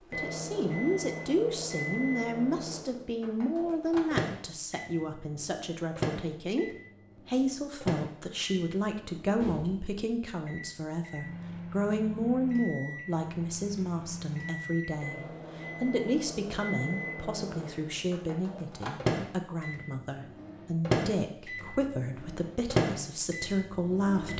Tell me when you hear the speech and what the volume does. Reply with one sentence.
The speech can be heard from 0.1 to 24.3 s, at a steady volume.